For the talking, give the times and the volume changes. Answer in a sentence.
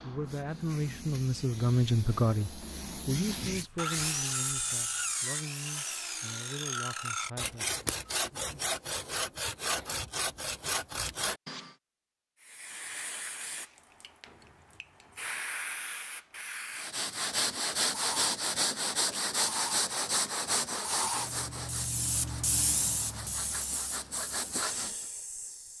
The talking can be heard from 0.0 to 7.8 s, getting quieter.